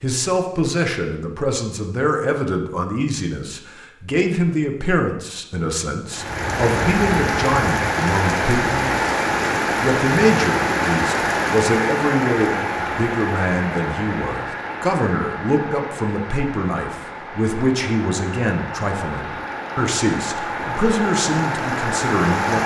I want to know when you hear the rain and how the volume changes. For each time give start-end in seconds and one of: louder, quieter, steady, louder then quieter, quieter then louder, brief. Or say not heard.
6.1-22.6 quieter then louder.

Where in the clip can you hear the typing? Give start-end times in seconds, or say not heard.
not heard.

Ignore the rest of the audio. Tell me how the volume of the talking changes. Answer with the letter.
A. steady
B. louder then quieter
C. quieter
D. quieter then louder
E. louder
A.